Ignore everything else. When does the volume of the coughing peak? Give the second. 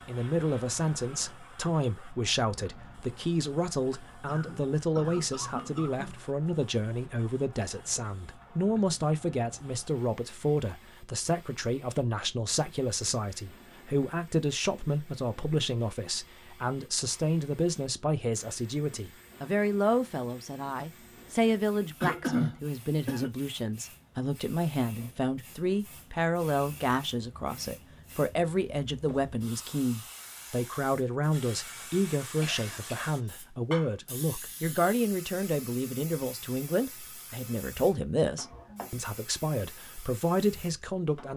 22 s.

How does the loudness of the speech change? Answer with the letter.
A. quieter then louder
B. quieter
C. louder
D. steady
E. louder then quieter
D.